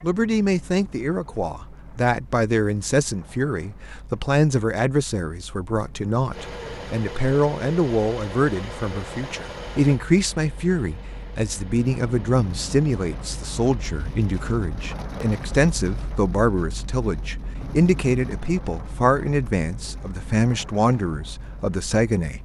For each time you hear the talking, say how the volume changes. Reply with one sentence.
You can hear the talking from 0.0 to 22.4 s, at a steady volume.